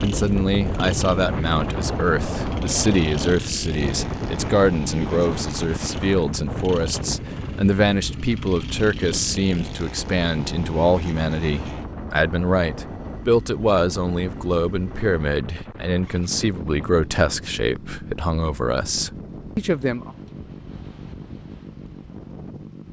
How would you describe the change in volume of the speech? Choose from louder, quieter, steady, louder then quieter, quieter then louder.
steady.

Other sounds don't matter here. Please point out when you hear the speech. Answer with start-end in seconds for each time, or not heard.
0.0-20.1.